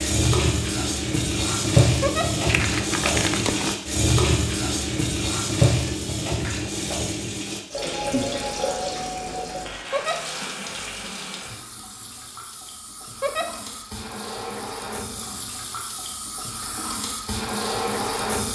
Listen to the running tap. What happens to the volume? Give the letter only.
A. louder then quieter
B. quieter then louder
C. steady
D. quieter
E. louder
B.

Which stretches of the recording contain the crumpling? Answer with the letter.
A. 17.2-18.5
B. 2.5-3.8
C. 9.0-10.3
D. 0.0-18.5
B.